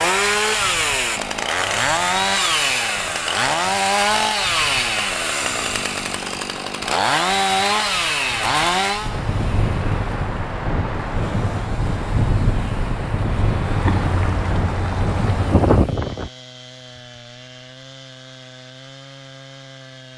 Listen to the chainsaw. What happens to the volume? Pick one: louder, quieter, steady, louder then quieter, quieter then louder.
quieter.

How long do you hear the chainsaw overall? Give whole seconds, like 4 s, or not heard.
20 s.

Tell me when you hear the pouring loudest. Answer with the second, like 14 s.
14 s.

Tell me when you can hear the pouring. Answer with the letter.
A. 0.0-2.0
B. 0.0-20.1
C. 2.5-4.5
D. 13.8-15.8
D.